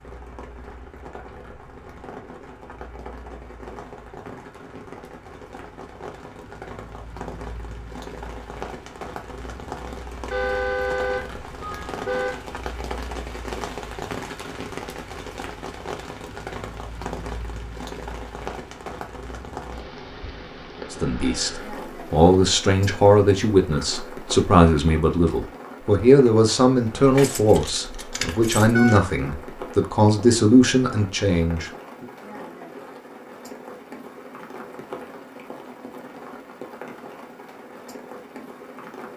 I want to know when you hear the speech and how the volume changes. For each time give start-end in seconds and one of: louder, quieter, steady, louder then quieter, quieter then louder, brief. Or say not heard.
20.9-32.0 steady.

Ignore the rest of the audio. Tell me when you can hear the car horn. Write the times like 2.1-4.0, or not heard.
10.3-12.3.